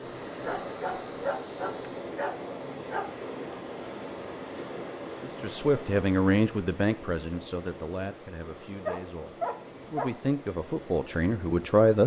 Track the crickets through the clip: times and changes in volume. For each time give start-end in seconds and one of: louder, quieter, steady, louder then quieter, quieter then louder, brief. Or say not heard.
0.0-12.0 louder.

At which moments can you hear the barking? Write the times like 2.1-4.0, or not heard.
0.4-3.1, 8.8-10.1.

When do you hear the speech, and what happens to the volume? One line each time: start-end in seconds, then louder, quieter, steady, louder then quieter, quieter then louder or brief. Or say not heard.
5.2-12.0 quieter then louder.